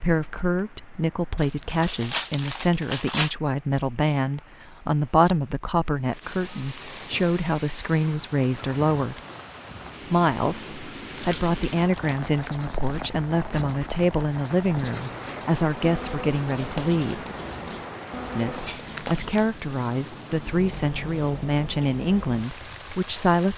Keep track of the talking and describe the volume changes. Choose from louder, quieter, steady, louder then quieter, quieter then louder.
steady.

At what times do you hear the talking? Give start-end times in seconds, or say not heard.
0.0-9.2, 10.1-17.2, 18.4-23.5.